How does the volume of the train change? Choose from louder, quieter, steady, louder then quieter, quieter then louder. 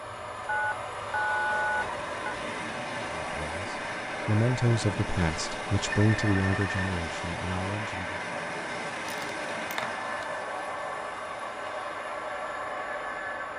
steady.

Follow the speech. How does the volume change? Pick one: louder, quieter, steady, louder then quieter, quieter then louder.
louder then quieter.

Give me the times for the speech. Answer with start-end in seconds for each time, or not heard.
3.1-8.2.